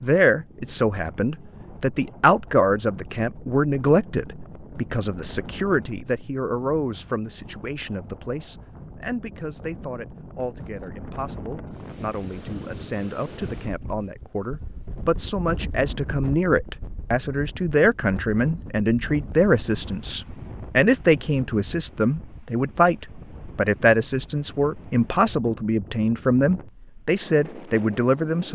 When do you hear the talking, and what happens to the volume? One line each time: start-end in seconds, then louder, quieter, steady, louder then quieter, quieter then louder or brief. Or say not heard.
0.0-28.5 quieter then louder.